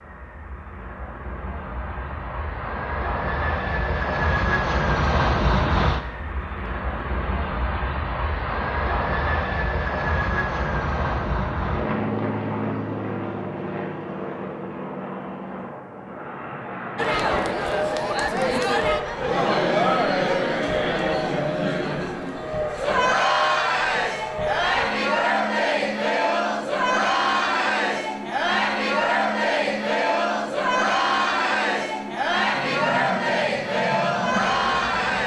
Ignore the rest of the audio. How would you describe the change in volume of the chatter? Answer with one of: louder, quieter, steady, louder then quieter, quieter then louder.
steady.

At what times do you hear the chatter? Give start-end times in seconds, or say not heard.
16.9-35.2.